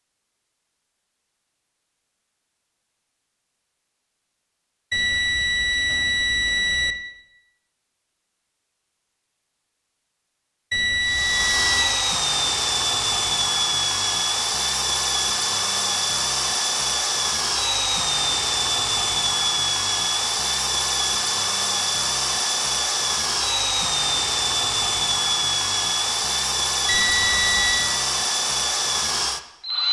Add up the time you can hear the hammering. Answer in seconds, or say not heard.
not heard.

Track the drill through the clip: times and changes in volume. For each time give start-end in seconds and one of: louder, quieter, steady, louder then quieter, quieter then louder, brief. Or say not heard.
11.0-29.8 steady.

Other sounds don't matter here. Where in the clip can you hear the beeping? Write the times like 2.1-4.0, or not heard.
4.9-7.0, 10.7-11.9, 26.9-27.9.